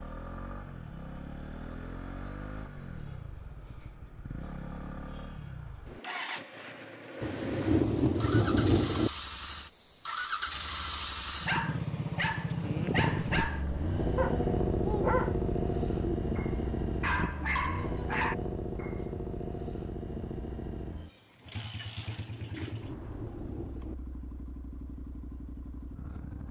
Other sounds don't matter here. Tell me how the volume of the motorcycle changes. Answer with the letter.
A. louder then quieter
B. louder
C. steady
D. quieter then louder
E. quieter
A.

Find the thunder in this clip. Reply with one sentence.
You can hear the thunder from 7.2 to 9.1 s and from 22.1 to 23.9 s.